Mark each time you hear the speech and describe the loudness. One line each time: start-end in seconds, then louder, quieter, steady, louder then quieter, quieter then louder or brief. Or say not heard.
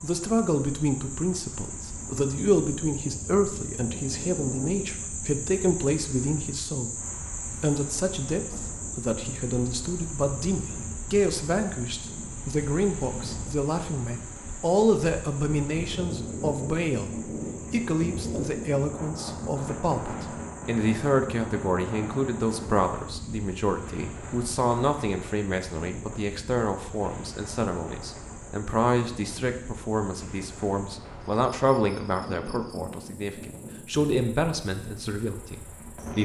0.0-36.1 steady.